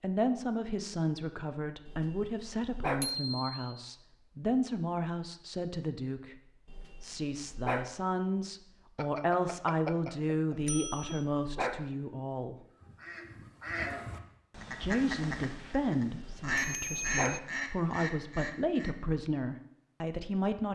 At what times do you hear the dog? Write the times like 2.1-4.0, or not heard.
1.9-3.1, 6.7-8.0, 10.7-11.8, 16.2-17.4.